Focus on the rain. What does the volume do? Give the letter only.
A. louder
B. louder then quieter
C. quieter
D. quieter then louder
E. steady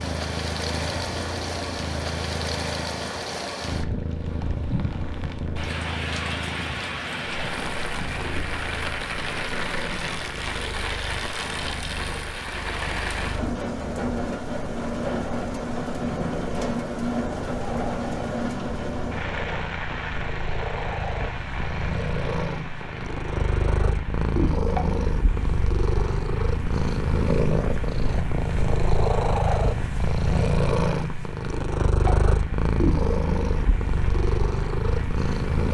C.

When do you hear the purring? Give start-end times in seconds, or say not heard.
0.0-35.6.